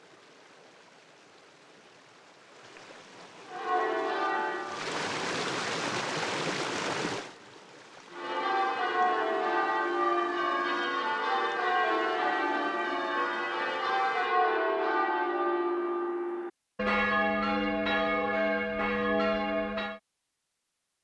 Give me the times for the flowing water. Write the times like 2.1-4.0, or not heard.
0.0-14.3.